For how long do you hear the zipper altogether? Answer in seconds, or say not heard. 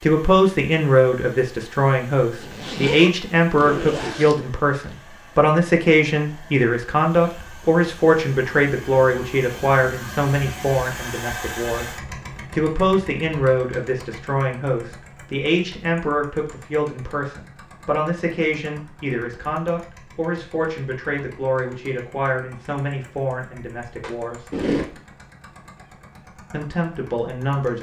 4 s.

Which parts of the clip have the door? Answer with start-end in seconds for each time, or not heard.
not heard.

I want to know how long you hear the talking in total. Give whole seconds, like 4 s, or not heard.
25 s.